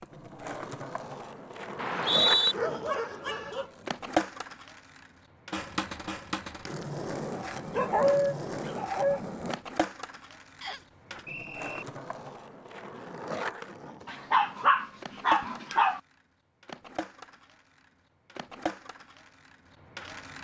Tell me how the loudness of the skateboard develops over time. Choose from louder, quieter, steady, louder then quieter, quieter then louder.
quieter.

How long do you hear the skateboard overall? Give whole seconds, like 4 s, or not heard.
20 s.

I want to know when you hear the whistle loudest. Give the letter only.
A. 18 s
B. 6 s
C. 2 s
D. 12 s
C.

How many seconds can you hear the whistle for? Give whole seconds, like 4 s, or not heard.
2 s.